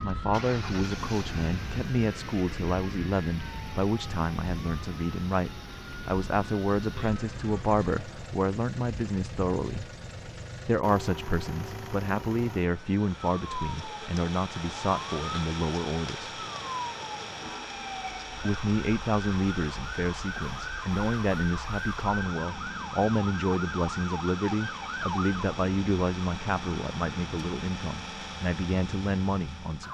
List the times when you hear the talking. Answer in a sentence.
You can hear the talking from 0.0 to 9.9 s, from 10.7 to 16.3 s and from 18.4 to 29.8 s.